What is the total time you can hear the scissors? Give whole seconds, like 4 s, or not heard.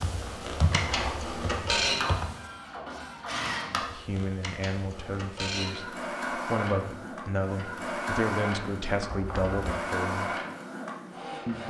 2 s.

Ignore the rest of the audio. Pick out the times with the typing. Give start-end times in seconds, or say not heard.
0.0-2.4.